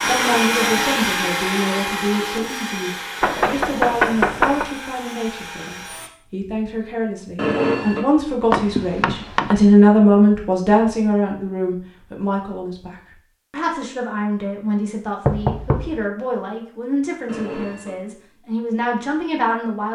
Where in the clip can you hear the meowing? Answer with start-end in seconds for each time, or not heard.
not heard.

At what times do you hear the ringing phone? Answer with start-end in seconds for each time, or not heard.
0.0-1.1, 7.3-8.1, 17.2-18.0.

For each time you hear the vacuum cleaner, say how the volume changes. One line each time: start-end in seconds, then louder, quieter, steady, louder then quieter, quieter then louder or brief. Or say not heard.
0.0-6.1 quieter.